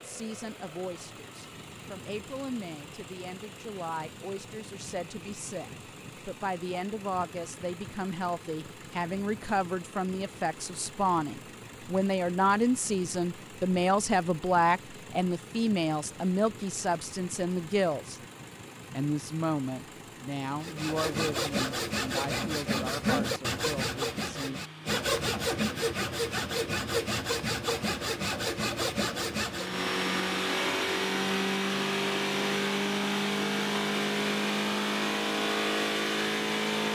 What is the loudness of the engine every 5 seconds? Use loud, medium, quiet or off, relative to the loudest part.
quiet, quiet, quiet, quiet, quiet, medium, loud, loud.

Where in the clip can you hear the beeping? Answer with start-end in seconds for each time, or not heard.
not heard.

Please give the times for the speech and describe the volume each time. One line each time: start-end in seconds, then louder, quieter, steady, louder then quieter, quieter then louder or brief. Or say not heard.
0.0-18.2 louder
18.9-24.6 quieter.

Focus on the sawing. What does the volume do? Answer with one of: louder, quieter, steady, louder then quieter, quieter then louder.
steady.